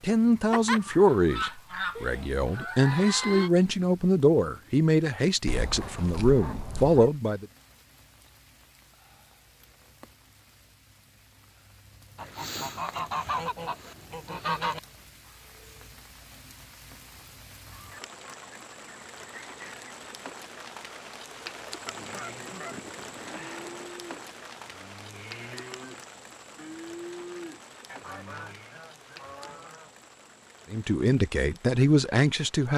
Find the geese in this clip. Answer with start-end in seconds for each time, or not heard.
0.5-3.5, 5.5-7.1, 12.2-14.8, 17.7-20.0, 21.9-23.9, 27.9-29.9.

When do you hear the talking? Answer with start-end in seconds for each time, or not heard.
0.0-7.5, 30.7-32.7.